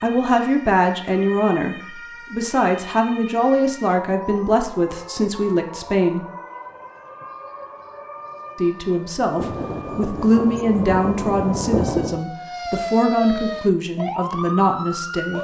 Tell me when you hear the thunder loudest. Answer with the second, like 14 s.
12 s.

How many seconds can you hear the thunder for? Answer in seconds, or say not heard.
3 s.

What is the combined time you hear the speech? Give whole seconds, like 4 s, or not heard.
13 s.